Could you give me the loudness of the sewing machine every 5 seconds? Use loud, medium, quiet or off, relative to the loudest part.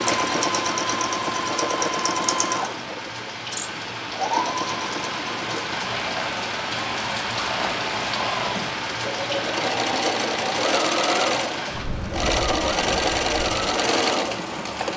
loud, medium, loud.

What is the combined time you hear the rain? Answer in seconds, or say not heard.
15 s.